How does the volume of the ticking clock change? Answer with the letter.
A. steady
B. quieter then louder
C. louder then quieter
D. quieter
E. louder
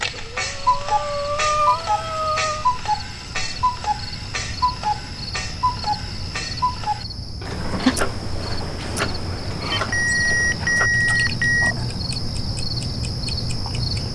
D.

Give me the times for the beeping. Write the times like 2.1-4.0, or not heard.
9.7-11.8.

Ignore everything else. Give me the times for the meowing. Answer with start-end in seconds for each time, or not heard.
7.4-8.0.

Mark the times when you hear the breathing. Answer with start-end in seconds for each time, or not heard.
0.0-2.6.